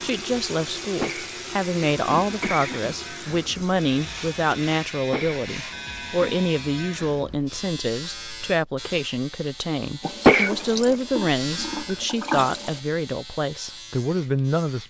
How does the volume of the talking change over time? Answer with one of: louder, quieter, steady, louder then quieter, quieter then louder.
steady.